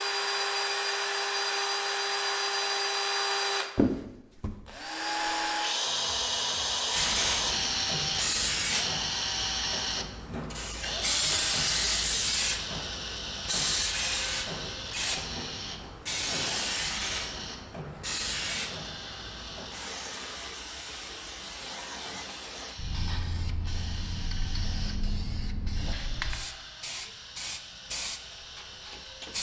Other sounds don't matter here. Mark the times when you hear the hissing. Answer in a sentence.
The hissing can be heard from 6.9 to 29.3 s.